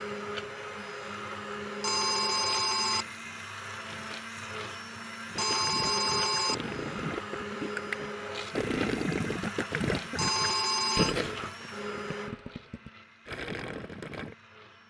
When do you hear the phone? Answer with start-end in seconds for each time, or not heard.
1.8-3.0, 5.3-6.5, 10.2-11.2.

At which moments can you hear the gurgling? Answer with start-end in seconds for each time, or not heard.
5.2-14.3.